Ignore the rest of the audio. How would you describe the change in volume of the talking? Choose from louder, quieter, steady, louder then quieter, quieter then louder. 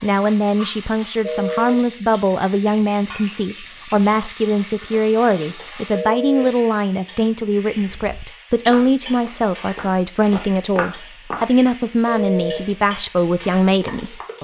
steady.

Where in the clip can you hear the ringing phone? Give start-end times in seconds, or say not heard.
1.2-1.8, 5.9-6.5, 12.1-12.6.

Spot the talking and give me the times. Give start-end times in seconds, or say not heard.
0.0-14.4.